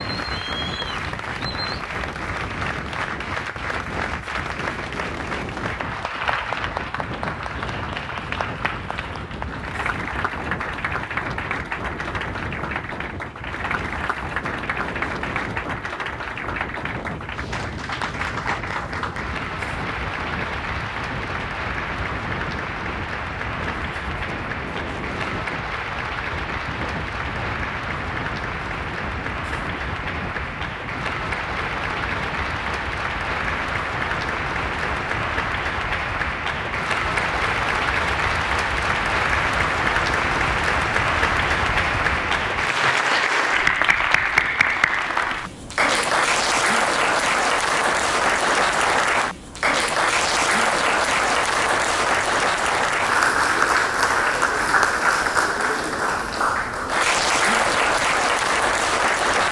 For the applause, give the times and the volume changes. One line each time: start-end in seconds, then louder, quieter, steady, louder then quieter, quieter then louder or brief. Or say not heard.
0.0-59.4 louder.